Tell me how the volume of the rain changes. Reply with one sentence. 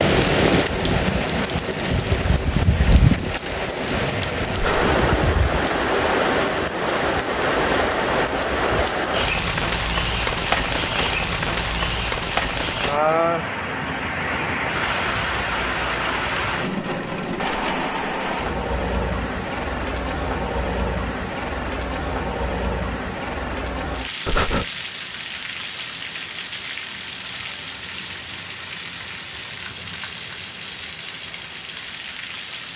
The volume of the rain goes down.